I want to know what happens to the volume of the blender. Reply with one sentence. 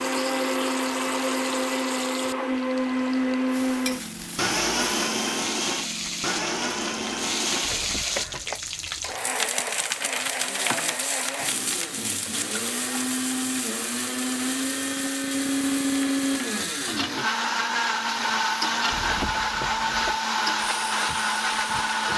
The loudness of the blender goes down, then up.